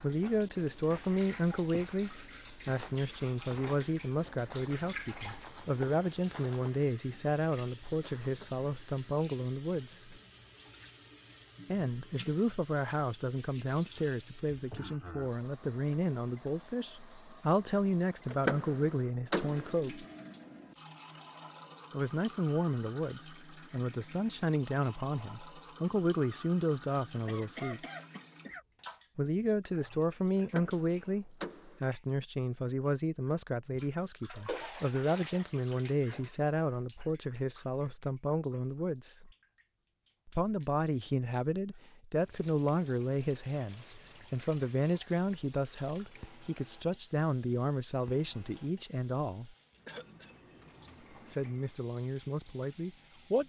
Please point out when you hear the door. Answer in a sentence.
You can hear the door from 18.3 to 19.7 s and from 30.4 to 31.8 s.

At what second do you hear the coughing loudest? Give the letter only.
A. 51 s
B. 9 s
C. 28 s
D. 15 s
C.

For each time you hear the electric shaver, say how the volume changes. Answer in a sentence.
You can't hear the electric shaver here.